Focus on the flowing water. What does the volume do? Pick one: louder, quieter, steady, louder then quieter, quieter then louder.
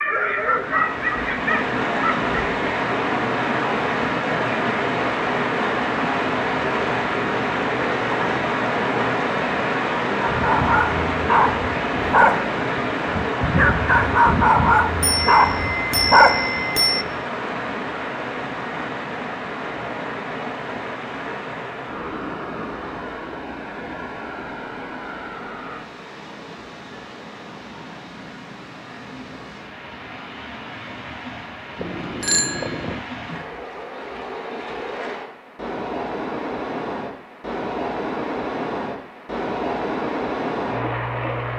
quieter then louder.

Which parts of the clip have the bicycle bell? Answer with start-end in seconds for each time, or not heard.
15.0-17.1, 31.8-33.0.